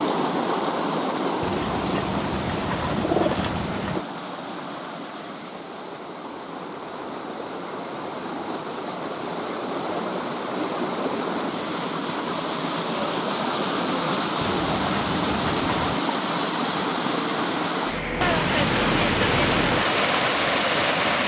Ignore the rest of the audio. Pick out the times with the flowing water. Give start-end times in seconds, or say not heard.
0.0-21.2.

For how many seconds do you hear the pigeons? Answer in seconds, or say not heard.
4 s.